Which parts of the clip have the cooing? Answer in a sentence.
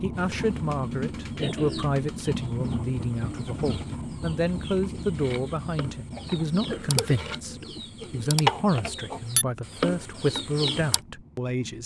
The cooing can be heard from 0.1 to 11.0 s.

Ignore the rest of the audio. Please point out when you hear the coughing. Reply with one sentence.
You can hear the coughing from 0.8 to 1.9 s and from 6.1 to 7.2 s.